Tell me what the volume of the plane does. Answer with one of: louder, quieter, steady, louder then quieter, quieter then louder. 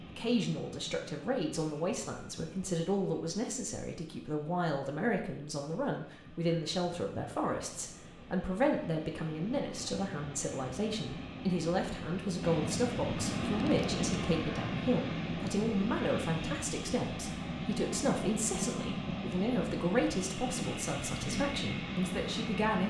louder.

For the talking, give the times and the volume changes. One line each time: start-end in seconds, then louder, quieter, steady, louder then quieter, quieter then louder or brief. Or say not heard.
0.0-22.8 steady.